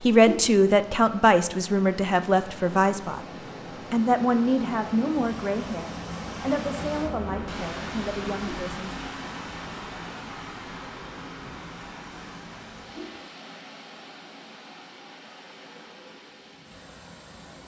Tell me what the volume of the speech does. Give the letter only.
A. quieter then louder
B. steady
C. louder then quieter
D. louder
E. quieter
E.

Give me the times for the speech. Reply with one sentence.
The speech can be heard from 0.0 to 9.0 s.